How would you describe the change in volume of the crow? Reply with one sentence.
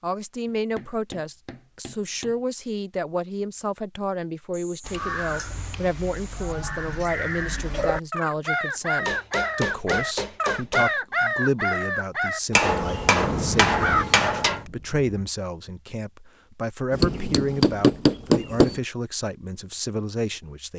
The loudness of the crow goes up, then down.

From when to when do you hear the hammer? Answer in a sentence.
You can hear the hammer from 0.8 to 2.4 s, from 4.5 to 6.5 s, from 9.1 to 10.9 s, from 12.6 to 14.6 s and from 16.9 to 18.7 s.